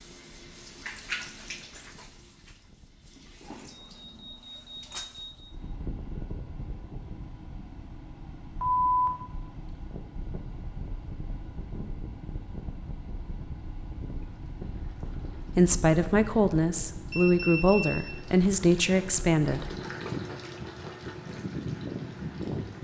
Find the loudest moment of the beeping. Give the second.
9 s.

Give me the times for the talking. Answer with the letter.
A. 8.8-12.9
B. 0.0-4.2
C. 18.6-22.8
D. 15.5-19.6
D.